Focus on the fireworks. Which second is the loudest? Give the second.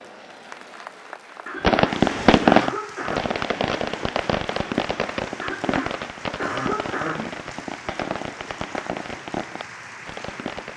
2 s.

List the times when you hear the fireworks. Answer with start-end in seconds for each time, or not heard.
1.6-10.7.